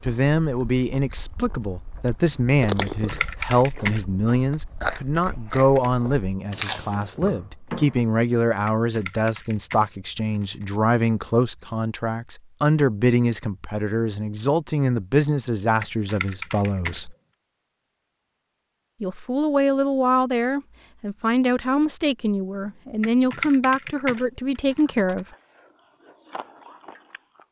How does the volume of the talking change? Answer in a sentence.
The loudness of the talking stays about the same.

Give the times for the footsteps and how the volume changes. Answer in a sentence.
The footsteps can't be heard in this clip.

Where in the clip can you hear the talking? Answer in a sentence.
The talking can be heard from 0.0 to 17.1 s and from 19.0 to 25.2 s.